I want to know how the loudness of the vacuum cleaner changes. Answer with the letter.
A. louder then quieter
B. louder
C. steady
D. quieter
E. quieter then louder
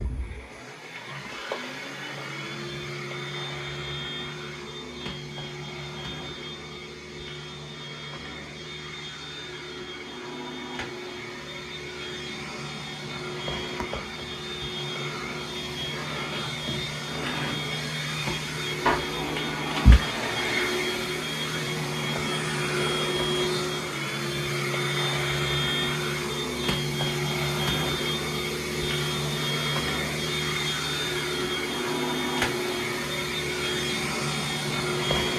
B.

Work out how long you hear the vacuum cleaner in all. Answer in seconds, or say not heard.
35 s.